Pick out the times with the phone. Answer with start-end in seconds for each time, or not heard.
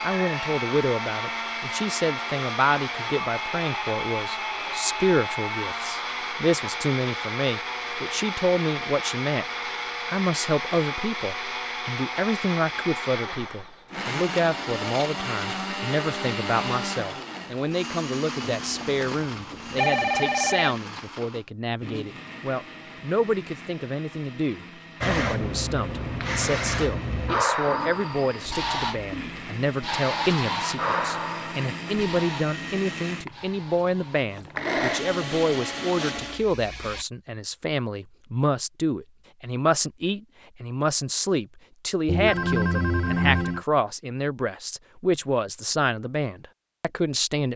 18.4-20.8, 42.0-43.6.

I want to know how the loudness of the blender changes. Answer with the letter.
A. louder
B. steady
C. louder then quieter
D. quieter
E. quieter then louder
E.